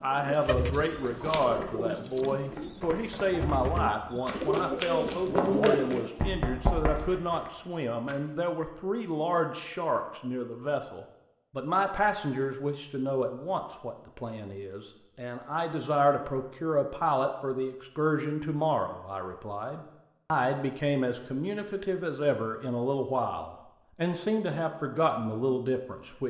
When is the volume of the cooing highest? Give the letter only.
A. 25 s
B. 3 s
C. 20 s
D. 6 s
D.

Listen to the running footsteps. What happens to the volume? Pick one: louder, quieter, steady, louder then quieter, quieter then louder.
louder.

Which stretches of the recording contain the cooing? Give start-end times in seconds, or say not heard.
0.1-6.2.